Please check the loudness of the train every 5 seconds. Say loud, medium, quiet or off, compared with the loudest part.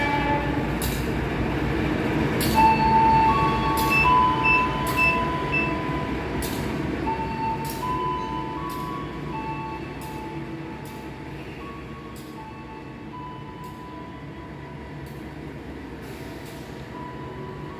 loud, medium, quiet, quiet.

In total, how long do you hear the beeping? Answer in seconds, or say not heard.
2 s.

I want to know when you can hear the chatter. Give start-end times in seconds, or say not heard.
not heard.